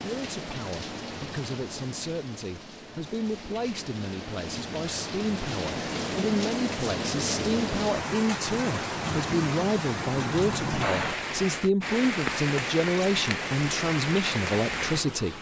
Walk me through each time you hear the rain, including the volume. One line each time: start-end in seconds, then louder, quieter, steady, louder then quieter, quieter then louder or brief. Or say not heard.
0.0-15.3 louder.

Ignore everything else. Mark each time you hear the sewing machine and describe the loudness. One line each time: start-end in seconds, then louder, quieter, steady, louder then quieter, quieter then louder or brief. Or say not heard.
not heard.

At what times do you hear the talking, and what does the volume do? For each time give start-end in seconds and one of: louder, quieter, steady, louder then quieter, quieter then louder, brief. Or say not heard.
0.0-15.3 louder.